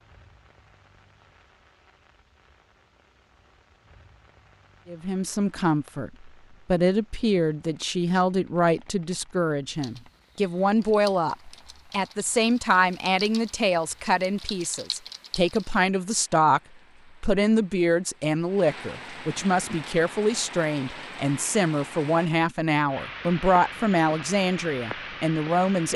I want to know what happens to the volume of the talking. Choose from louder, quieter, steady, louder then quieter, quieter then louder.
steady.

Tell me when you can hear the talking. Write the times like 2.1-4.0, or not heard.
4.8-16.6, 17.2-25.9.